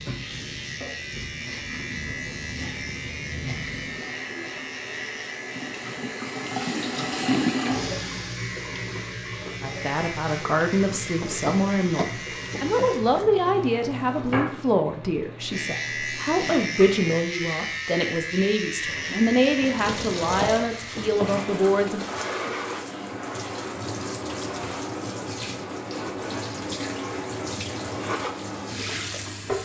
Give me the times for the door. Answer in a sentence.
You can hear the door from 11.2 to 12.9 s and from 19.7 to 21.4 s.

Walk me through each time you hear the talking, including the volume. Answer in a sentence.
The talking can be heard from 9.6 to 22.1 s, at a steady volume.